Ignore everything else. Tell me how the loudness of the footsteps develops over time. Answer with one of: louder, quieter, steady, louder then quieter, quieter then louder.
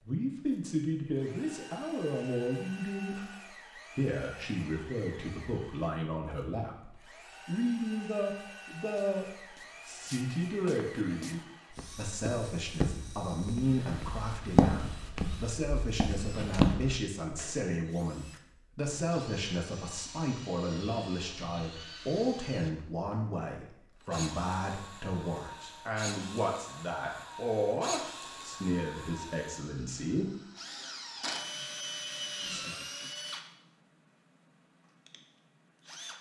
louder.